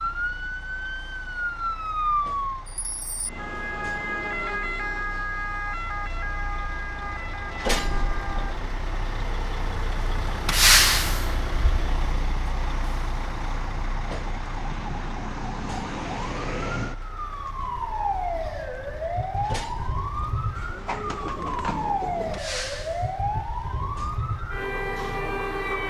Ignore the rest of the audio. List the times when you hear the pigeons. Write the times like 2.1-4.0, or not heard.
20.6-22.4.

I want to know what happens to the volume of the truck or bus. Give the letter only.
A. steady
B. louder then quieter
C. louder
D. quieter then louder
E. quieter
B.